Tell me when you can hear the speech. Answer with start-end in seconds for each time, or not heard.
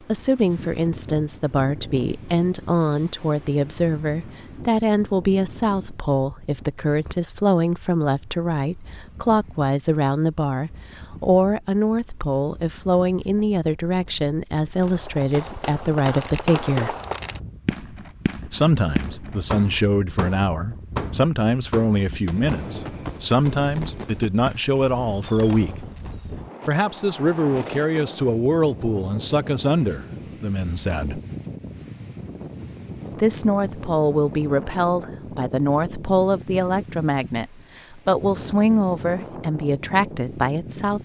0.1-16.9, 18.5-25.8, 26.6-31.2, 33.1-41.0.